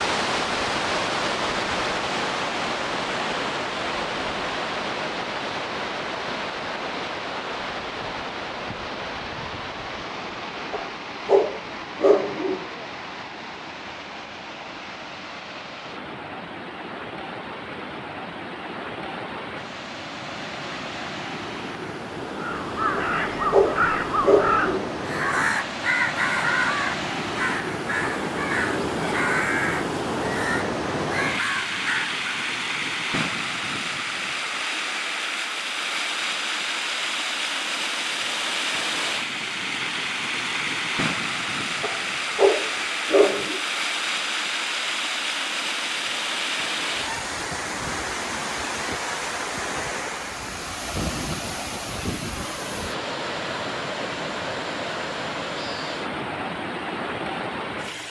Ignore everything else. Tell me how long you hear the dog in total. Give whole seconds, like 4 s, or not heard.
6 s.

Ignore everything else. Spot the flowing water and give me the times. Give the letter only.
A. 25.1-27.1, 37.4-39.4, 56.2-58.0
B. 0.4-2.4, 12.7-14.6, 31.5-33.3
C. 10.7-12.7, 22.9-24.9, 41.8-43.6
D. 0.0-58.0
D.